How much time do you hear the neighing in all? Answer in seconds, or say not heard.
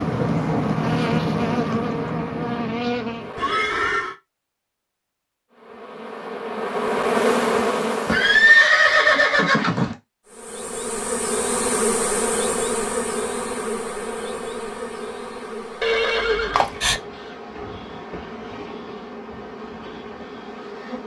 4 s.